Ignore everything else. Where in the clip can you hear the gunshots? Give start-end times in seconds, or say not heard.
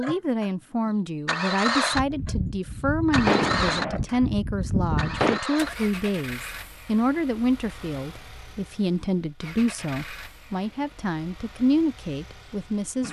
1.9-5.4.